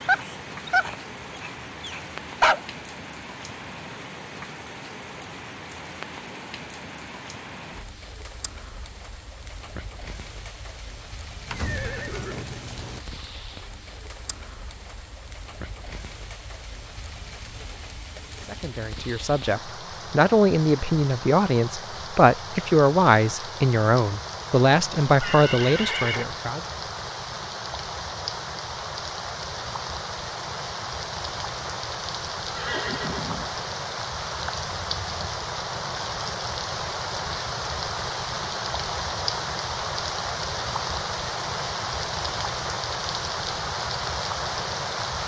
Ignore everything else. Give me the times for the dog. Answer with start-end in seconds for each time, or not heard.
0.0-2.6.